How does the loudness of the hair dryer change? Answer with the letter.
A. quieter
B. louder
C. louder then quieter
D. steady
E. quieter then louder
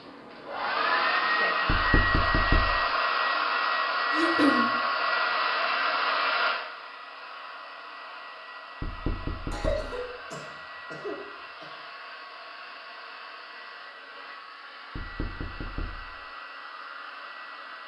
A.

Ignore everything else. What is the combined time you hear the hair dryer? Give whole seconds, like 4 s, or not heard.
18 s.